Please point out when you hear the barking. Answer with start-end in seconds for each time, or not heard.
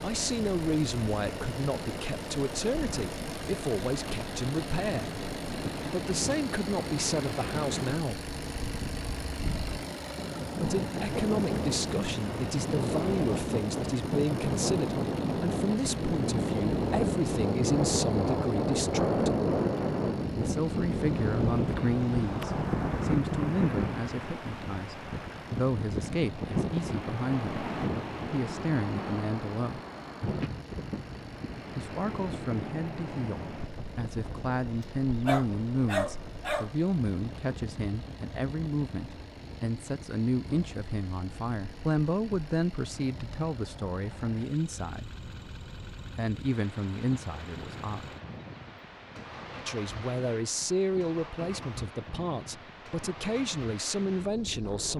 35.2-36.7.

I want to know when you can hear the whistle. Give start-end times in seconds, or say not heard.
not heard.